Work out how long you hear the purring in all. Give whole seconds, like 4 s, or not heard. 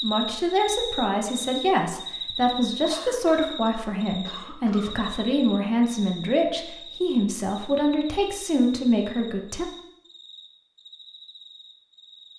not heard.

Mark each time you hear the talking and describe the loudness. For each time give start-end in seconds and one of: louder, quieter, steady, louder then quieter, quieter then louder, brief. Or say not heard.
0.0-9.7 steady.